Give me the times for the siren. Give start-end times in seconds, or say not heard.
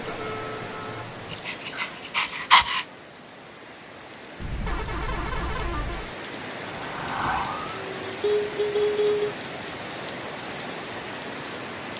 6.5-8.2.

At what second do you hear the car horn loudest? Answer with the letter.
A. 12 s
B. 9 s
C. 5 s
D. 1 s
B.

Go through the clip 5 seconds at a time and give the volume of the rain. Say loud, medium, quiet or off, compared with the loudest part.
medium, loud, loud.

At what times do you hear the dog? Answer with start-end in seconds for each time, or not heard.
1.3-2.9.